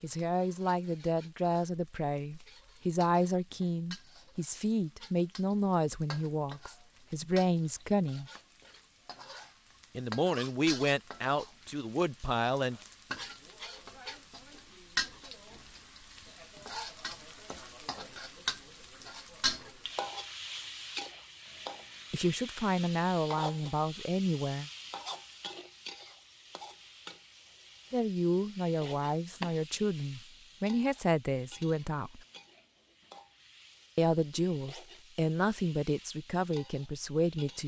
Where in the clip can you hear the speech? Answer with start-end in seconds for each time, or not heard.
0.0-8.3, 9.9-12.8, 22.1-24.7, 27.9-32.2, 34.0-37.6.